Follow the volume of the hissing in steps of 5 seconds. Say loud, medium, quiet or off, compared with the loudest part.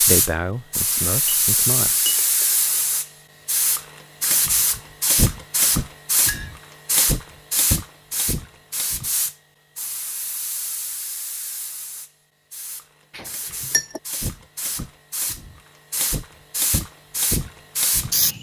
loud, loud, medium, loud.